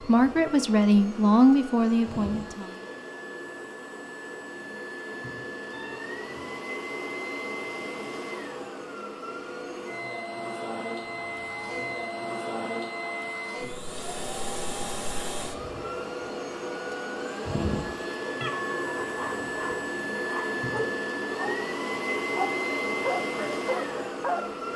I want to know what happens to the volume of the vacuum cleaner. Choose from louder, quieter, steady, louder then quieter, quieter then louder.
louder.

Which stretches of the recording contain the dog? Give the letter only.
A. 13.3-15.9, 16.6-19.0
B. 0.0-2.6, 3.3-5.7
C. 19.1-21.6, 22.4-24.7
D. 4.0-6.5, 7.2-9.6
C.